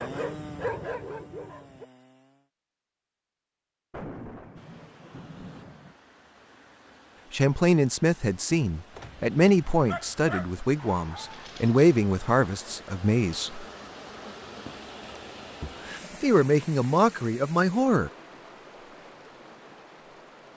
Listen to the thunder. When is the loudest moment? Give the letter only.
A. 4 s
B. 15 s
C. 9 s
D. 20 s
A.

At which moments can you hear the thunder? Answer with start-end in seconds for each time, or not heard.
3.9-6.0.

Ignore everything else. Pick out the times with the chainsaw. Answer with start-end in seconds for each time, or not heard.
0.0-2.5.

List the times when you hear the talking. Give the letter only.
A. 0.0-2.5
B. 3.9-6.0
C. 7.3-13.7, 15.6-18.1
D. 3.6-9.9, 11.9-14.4
C.